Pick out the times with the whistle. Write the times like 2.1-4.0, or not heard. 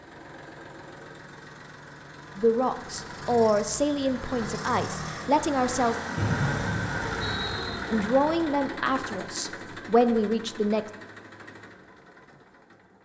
6.2-7.8.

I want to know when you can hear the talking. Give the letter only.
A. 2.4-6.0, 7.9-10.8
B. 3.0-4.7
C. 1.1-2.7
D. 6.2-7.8
A.